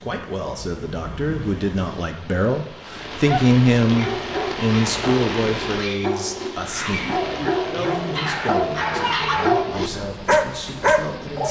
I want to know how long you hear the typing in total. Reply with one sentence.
You can't hear the typing here.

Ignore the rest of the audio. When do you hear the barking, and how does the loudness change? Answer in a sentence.
You can hear the barking from 3.2 to 11.4 s, getting louder.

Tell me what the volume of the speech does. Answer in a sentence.
The loudness of the speech goes up, then down.